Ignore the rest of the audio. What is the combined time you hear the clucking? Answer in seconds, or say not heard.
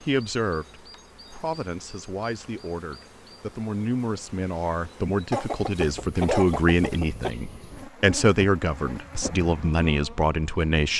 2 s.